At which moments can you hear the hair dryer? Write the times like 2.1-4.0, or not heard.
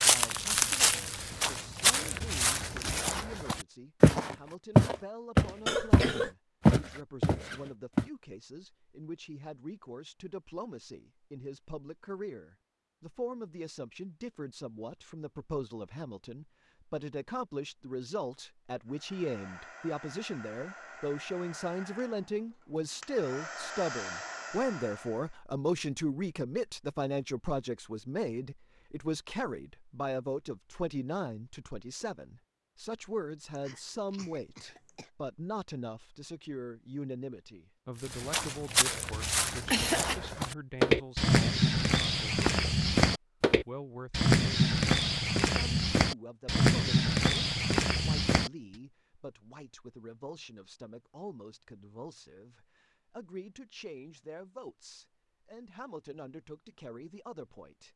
18.9-25.4.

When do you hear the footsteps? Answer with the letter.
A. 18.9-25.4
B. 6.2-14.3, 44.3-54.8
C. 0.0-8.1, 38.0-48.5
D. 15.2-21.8
C.